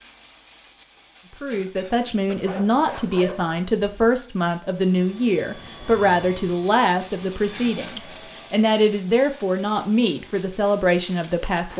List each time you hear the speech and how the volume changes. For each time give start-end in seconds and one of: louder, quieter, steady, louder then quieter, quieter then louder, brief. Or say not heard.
1.4-11.7 steady.